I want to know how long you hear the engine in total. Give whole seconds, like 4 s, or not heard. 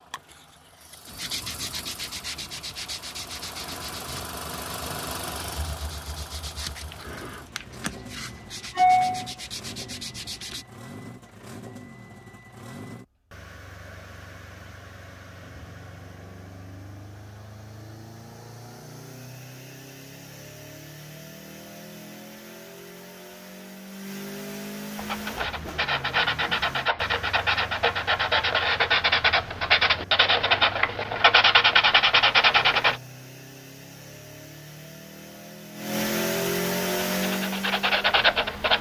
39 s.